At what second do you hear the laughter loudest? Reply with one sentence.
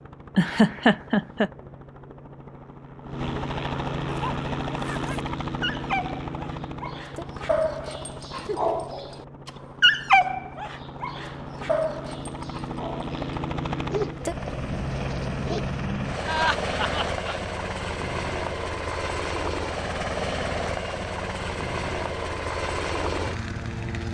The loudest moment of the laughter is at 1 second.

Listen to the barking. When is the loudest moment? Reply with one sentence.
The volume of the barking peaks at 10 seconds.